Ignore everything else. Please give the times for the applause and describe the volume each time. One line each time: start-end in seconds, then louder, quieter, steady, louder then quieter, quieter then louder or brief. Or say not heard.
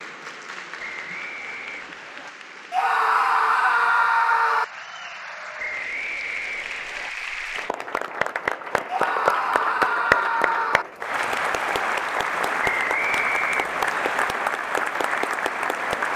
0.0-16.1 louder.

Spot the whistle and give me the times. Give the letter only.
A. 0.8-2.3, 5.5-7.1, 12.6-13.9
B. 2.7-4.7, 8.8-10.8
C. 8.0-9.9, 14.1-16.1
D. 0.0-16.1
A.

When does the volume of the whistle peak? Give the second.
13 s.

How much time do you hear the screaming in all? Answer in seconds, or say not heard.
4 s.